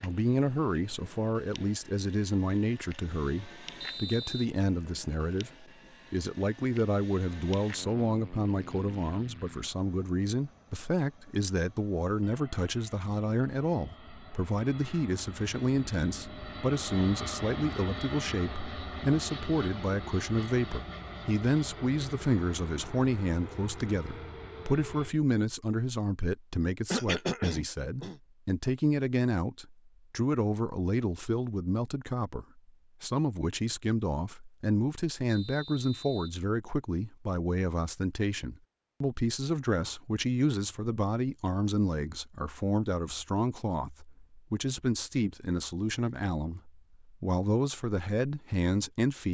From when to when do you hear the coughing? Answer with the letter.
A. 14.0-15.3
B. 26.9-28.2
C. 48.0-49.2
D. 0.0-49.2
B.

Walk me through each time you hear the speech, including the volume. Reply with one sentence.
You can hear the speech from 0.0 to 49.2 s, at a steady volume.